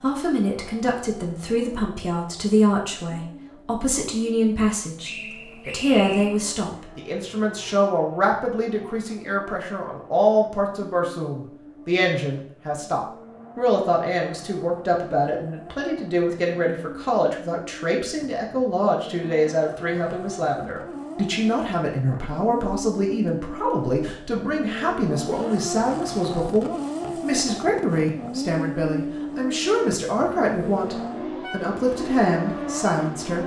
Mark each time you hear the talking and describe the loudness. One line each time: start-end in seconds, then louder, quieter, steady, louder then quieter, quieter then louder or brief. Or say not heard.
0.0-33.4 steady.